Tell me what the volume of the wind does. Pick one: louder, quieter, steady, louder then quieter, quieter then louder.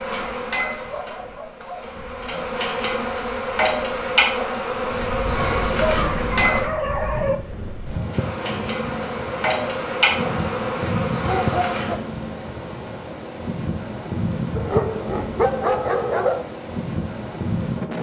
louder.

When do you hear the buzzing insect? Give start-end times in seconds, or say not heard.
0.0-6.7, 8.1-12.0.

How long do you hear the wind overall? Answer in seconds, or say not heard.
18 s.